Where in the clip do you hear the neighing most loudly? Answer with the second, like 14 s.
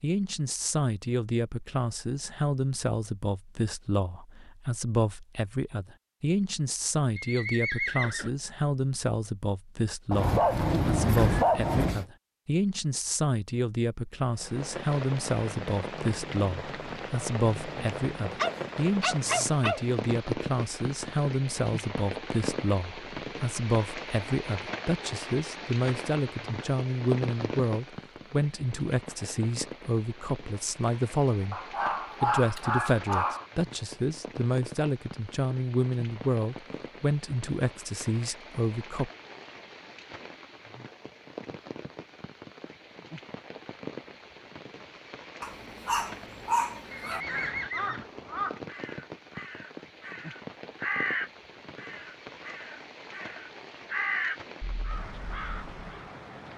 8 s.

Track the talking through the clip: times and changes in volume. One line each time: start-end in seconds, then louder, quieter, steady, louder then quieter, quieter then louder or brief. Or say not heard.
0.0-31.6 steady
32.2-39.1 steady.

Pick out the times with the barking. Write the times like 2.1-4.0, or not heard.
10.1-12.1, 18.4-19.9, 31.5-33.5, 45.4-47.2.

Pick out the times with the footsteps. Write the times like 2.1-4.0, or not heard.
not heard.